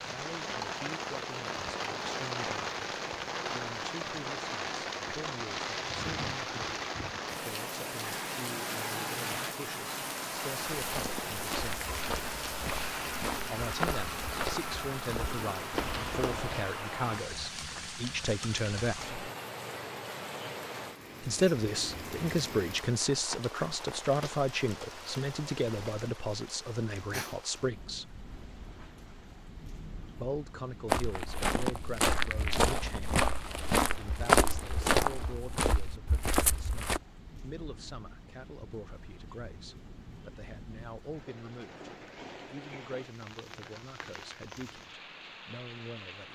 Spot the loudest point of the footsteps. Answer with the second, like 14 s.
34 s.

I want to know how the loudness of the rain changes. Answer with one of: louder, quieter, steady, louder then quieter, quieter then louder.
quieter.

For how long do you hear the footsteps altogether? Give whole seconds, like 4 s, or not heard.
12 s.